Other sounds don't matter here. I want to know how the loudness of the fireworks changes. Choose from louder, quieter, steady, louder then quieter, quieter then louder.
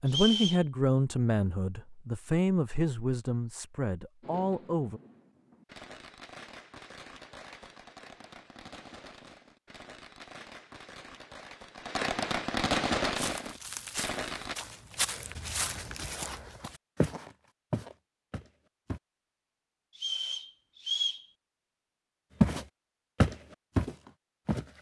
louder.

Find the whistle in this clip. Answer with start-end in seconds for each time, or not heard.
0.1-0.7, 19.9-21.2.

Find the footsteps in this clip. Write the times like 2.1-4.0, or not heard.
13.2-19.0, 22.4-24.6.